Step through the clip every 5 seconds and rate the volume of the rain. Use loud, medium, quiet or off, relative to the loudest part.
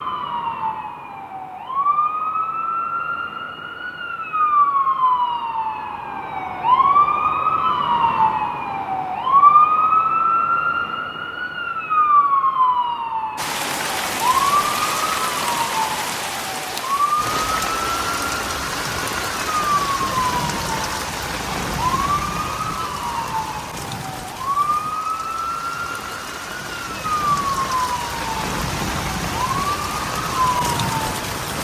off, off, loud, loud, loud, loud, loud.